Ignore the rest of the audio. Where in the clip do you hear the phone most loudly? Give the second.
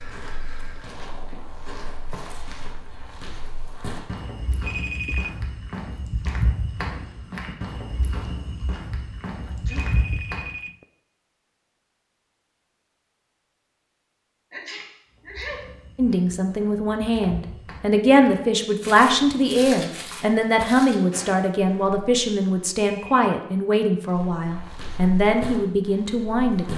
5 s.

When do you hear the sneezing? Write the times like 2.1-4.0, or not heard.
9.4-9.9, 14.5-15.6.